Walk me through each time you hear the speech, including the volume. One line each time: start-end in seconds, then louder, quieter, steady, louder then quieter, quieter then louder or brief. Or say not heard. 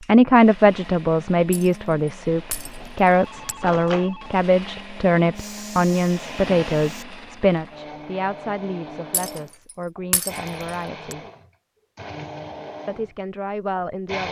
0.1-11.2 quieter
12.8-14.2 brief.